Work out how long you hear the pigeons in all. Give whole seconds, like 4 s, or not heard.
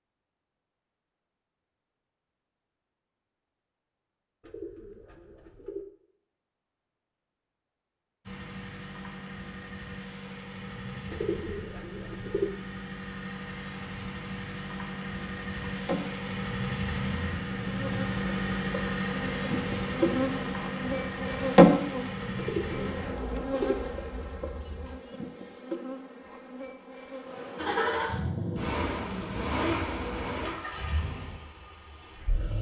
4 s.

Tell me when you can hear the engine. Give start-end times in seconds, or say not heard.
8.2-24.9, 27.6-32.5.